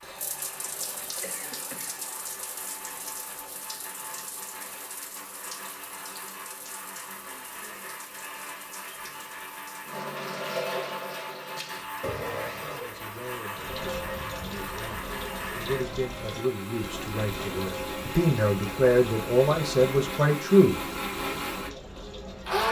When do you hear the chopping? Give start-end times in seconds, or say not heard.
not heard.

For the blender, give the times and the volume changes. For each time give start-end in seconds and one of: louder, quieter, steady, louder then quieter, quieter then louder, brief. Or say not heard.
0.0-22.6 louder.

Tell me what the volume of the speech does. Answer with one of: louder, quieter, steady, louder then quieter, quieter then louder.
louder.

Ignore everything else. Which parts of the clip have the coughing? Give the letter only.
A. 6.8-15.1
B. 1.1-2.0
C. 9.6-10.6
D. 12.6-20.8
B.